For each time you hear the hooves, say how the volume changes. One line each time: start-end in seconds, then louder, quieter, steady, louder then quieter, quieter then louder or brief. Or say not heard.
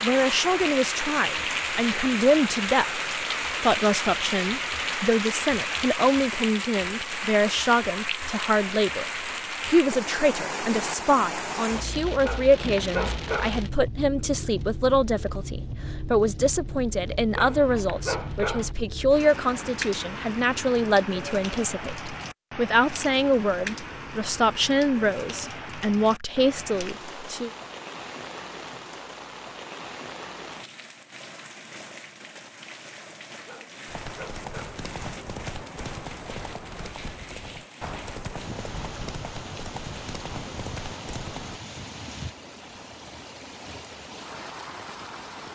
33.9-41.6 steady.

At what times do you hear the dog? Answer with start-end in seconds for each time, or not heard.
12.2-13.6, 17.4-18.8, 33.5-34.9.